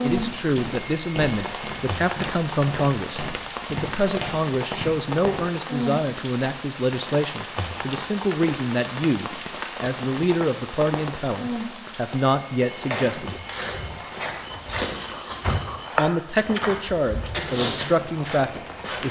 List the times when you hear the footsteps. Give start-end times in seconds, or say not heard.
0.1-5.4, 12.7-19.0.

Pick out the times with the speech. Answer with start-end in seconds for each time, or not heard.
0.0-13.4, 15.9-19.0.